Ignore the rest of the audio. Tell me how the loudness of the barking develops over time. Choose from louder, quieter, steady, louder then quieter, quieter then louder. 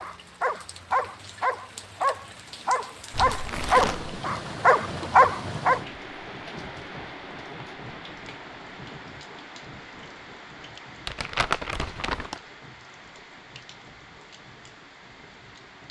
louder.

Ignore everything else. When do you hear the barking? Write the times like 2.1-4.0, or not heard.
0.0-5.8.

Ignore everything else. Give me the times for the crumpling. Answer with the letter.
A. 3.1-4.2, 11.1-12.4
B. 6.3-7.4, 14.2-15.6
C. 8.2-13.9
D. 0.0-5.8
A.